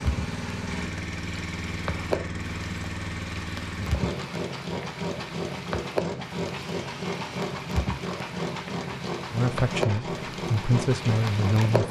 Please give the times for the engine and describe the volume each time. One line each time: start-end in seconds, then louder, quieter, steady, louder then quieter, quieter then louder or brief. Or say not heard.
0.0-11.8 steady.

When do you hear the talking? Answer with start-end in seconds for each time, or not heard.
9.3-11.8.